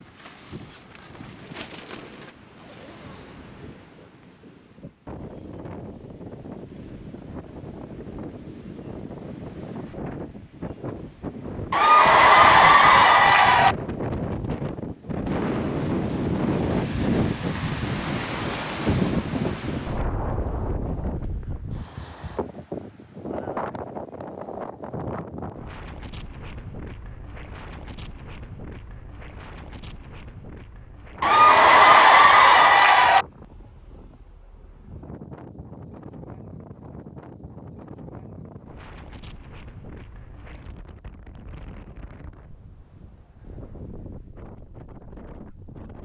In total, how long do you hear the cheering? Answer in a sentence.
The cheering can be heard for 4 seconds in total.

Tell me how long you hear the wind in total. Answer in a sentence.
The wind can be heard for 46 seconds in total.